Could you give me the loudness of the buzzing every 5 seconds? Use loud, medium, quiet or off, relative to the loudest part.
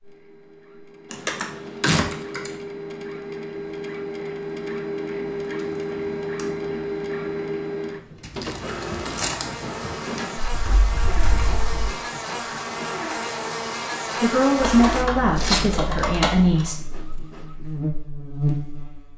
off, medium, loud, loud.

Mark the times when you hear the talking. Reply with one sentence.
You can hear the talking from 14.2 to 16.8 s.